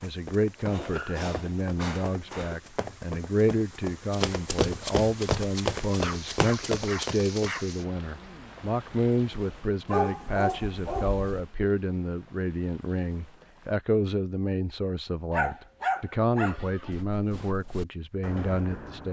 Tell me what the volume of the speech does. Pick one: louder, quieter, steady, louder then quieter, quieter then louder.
steady.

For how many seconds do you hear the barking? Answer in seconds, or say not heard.
7 s.